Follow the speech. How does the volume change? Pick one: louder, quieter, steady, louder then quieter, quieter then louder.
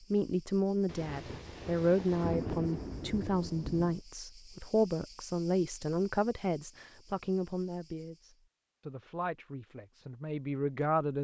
quieter.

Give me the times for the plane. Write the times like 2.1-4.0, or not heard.
not heard.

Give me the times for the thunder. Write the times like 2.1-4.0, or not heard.
0.8-4.0.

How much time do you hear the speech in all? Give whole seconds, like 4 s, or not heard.
11 s.